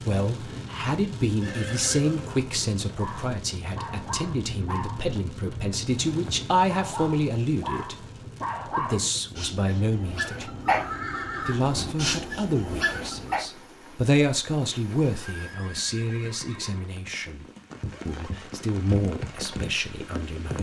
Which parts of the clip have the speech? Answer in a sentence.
You can hear the speech from 0.0 to 8.1 s, from 8.7 to 10.5 s, from 11.4 to 17.4 s and from 18.1 to 20.5 s.